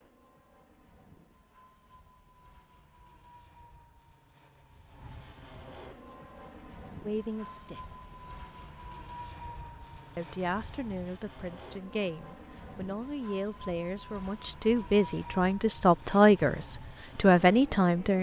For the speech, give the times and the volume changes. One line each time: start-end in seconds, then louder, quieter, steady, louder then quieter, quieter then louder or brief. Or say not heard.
7.0-8.0 brief
10.2-18.1 louder.